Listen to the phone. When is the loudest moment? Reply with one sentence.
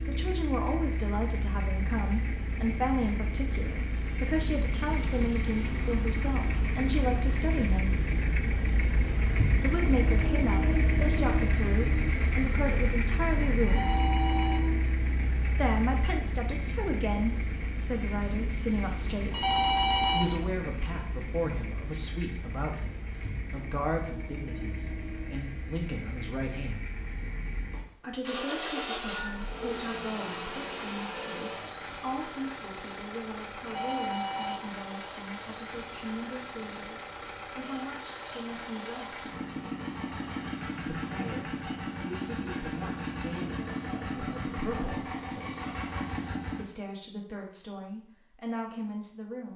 The loudest moment of the phone is at 20 seconds.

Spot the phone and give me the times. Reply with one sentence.
You can hear the phone from 13.7 to 14.8 s, from 19.3 to 20.4 s and from 33.6 to 34.8 s.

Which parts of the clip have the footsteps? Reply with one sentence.
You can't hear the footsteps here.